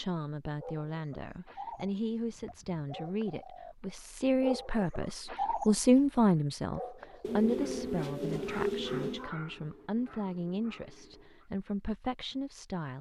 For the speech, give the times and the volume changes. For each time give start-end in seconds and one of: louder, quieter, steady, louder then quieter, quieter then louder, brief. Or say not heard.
0.0-12.9 louder then quieter.